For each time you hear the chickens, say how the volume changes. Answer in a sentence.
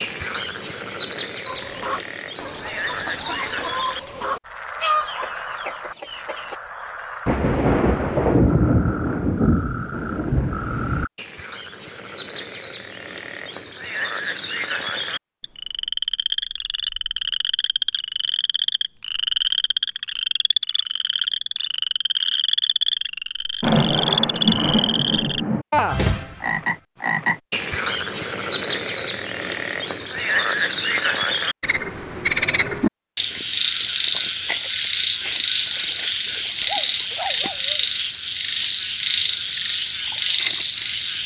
You can hear the chickens from 1.4 to 6.5 s, getting louder then quieter.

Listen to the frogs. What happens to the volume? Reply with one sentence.
The loudness of the frogs goes up.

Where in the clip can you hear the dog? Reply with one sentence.
You can hear the dog from 36.6 to 37.9 s.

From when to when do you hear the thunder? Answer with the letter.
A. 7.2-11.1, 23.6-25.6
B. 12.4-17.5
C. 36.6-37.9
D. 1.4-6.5
A.